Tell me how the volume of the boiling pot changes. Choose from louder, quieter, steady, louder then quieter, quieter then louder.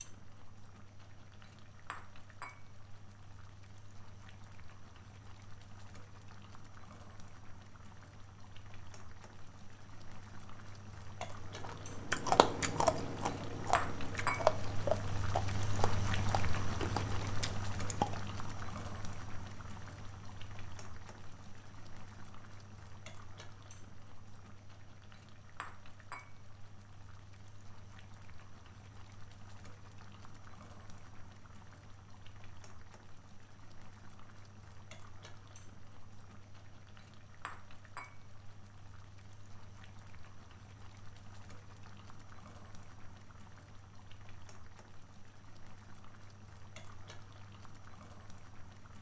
louder then quieter.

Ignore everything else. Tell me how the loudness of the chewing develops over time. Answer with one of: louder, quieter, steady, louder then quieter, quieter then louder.
quieter.